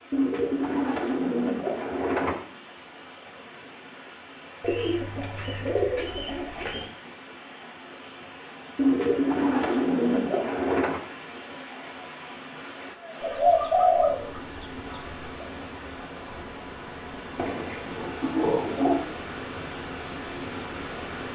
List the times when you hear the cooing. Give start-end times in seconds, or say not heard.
0.1-2.4, 4.6-6.9, 8.8-11.1, 13.2-15.4, 17.4-19.0.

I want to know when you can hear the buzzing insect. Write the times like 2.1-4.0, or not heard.
not heard.